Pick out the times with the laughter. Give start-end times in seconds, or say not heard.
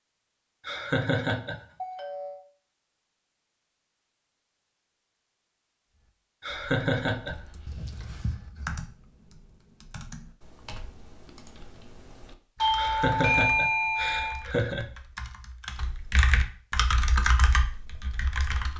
0.7-1.6, 6.4-7.3, 12.8-14.8.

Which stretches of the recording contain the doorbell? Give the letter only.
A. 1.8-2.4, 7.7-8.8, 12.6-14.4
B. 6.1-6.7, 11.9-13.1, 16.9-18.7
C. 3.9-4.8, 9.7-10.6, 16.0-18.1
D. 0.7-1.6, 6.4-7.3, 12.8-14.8
A.